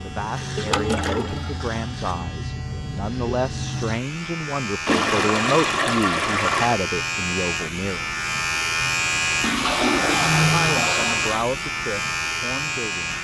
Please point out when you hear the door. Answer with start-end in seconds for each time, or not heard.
not heard.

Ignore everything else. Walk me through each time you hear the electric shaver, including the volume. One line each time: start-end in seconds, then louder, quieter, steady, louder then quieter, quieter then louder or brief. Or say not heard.
0.0-13.1 louder.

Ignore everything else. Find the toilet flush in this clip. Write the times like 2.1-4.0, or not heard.
0.6-1.8, 4.8-6.8, 9.4-11.4.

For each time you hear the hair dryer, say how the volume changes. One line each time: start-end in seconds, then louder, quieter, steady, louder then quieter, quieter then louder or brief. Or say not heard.
not heard.